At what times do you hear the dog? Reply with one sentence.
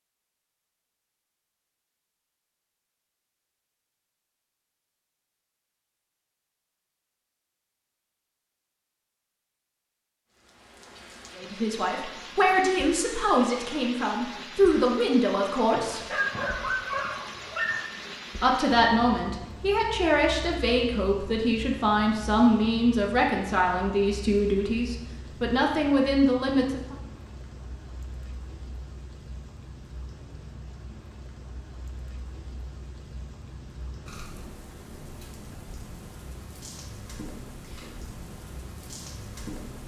You can hear the dog from 15.7 to 17.9 s.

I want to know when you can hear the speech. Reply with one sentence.
The speech can be heard from 11.3 to 16.0 s and from 18.4 to 26.9 s.